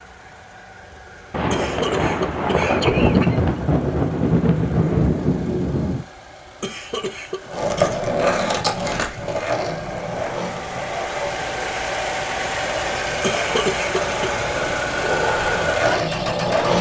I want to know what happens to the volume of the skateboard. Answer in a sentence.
The volume of the skateboard goes down, then up.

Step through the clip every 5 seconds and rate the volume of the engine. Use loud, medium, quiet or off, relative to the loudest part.
quiet, quiet, loud, loud.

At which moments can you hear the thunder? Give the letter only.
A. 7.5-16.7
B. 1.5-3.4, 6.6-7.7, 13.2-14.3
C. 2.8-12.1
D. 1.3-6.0
D.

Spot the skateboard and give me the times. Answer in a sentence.
You can hear the skateboard from 7.5 to 16.7 s.